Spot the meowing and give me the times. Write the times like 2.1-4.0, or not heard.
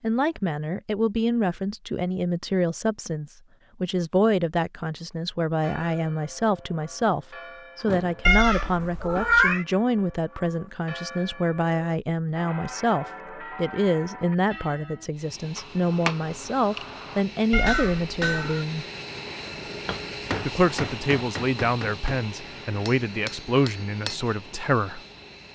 8.2-9.7, 17.5-18.6.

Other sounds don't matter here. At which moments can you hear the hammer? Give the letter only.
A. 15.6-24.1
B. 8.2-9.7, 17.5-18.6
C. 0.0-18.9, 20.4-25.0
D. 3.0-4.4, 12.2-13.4
A.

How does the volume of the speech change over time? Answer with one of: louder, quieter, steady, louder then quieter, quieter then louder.
steady.